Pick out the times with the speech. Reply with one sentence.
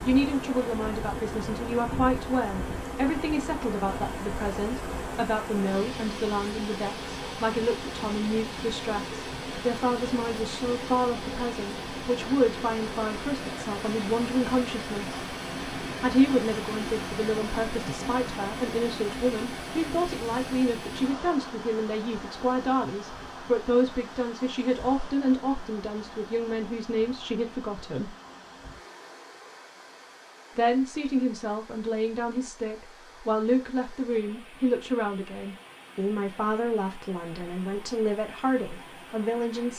The speech can be heard from 0.0 to 15.2 s, from 16.0 to 28.1 s and from 30.6 to 39.7 s.